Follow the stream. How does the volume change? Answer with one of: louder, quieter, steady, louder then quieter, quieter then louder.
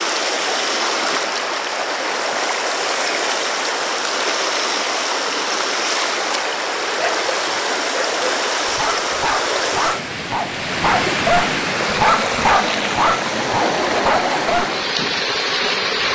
steady.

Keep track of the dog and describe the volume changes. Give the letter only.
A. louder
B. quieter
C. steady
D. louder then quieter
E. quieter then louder
A.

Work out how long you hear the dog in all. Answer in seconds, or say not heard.
8 s.